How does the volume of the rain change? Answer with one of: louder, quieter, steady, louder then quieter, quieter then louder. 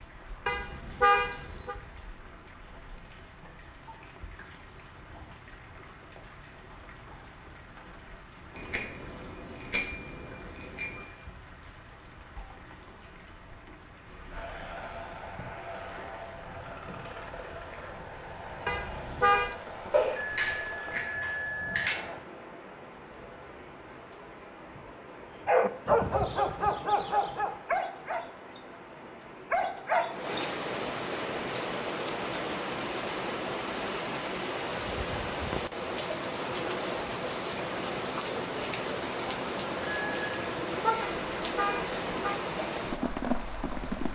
louder.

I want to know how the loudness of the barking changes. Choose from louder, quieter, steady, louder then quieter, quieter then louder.
quieter then louder.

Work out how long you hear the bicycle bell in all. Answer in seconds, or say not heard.
6 s.